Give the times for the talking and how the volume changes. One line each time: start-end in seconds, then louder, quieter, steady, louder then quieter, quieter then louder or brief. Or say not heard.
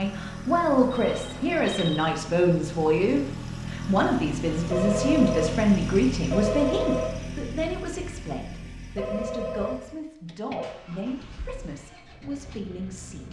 0.0-13.2 quieter.